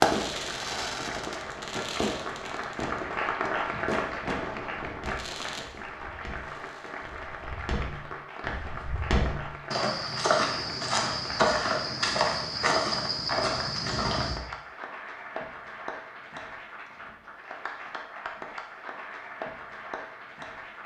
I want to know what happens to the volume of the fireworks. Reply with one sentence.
The loudness of the fireworks goes down.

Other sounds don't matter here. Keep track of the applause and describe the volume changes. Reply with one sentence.
The loudness of the applause goes down.